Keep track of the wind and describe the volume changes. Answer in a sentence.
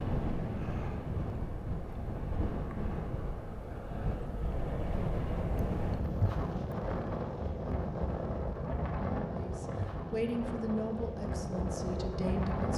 The volume of the wind stays about the same.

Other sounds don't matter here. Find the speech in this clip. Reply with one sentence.
The speech can be heard from 9.3 to 12.7 s.